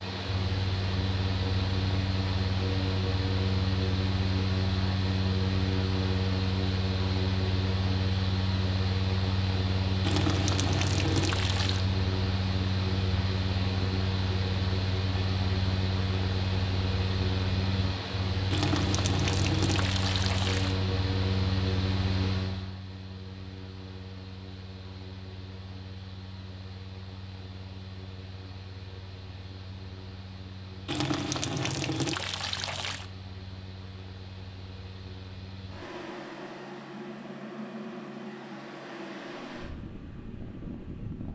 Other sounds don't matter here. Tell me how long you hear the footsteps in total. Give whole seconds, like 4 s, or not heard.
not heard.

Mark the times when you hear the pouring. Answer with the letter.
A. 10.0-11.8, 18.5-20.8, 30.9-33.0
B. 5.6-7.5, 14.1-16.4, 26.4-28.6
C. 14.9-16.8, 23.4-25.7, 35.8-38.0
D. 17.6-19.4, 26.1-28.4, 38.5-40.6
A.